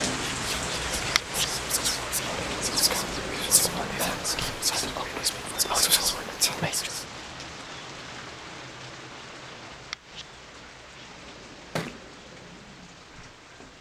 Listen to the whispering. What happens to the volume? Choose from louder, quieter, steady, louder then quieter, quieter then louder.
louder.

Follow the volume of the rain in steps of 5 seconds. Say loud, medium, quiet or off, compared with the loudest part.
loud, medium, quiet.